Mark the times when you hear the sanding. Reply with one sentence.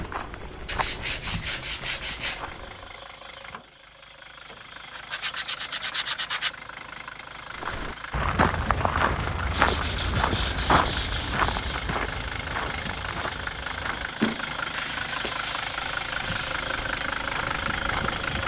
You can hear the sanding from 0.7 to 2.4 s, from 4.9 to 6.5 s, from 9.5 to 11.9 s and from 14.2 to 16.8 s.